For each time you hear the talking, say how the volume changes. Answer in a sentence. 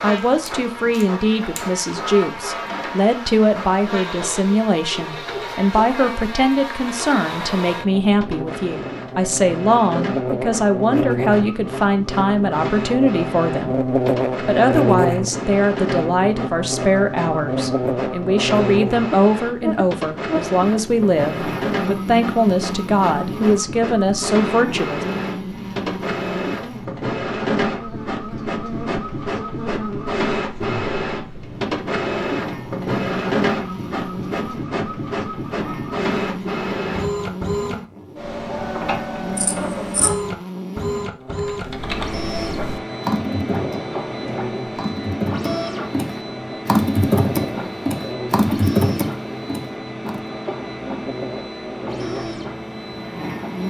You can hear the talking from 0.0 to 25.1 s, at a steady volume.